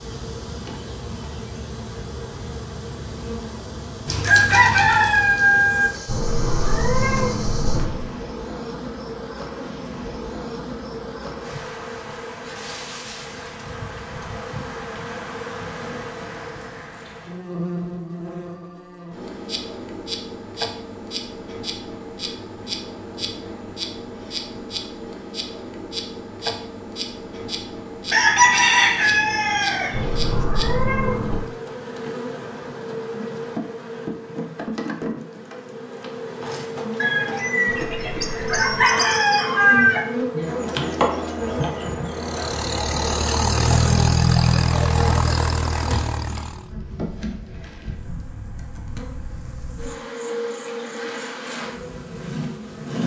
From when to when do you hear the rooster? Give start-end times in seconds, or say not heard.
4.0-5.9, 28.1-30.4, 37.0-40.0.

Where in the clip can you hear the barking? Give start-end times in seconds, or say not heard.
not heard.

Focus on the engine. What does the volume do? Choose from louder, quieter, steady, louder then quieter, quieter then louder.
louder then quieter.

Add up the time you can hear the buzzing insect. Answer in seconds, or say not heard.
53 s.